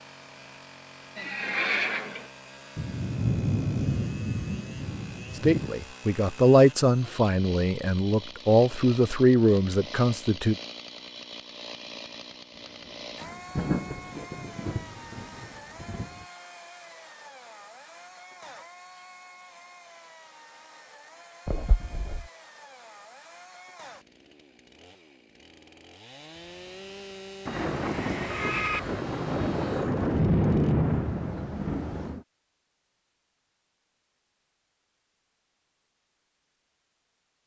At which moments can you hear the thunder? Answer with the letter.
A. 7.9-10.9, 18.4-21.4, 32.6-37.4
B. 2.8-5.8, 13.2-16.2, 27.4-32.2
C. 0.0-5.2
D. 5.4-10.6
B.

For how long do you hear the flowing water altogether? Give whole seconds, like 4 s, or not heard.
not heard.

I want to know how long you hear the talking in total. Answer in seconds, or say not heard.
5 s.